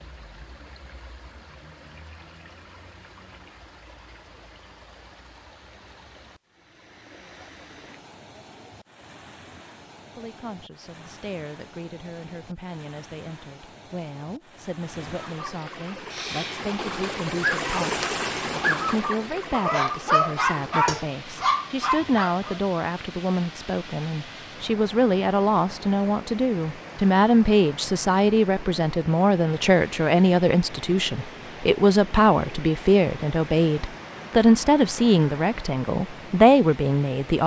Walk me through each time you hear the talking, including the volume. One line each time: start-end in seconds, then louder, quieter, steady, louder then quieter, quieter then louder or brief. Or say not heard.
10.2-37.4 louder.